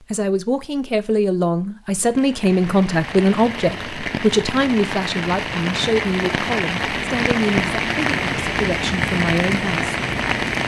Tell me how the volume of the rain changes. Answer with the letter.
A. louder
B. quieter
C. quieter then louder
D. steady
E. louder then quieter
A.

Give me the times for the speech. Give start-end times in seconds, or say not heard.
0.0-9.9.